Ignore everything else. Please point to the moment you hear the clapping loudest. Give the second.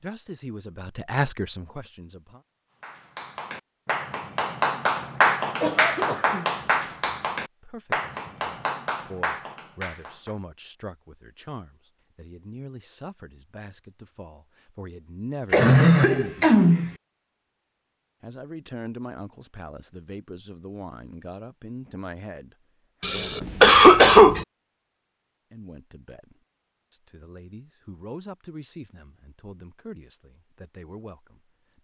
5 s.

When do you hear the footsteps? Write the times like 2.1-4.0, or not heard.
not heard.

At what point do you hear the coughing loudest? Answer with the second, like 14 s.
24 s.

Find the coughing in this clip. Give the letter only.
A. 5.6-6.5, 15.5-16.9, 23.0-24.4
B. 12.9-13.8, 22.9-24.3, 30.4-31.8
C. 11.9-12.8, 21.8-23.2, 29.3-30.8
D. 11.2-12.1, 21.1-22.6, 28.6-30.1
A.